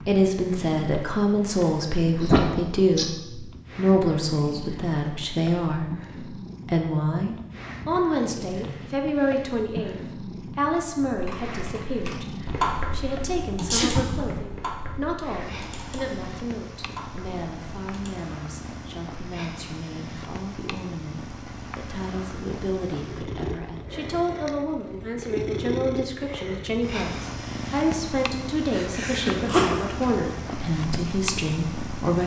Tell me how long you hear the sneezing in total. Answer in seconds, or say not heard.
3 s.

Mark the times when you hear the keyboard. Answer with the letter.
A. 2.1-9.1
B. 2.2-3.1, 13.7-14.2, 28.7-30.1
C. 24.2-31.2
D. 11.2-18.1
D.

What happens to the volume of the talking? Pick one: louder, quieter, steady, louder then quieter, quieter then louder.
quieter then louder.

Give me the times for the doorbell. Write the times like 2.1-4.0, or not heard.
not heard.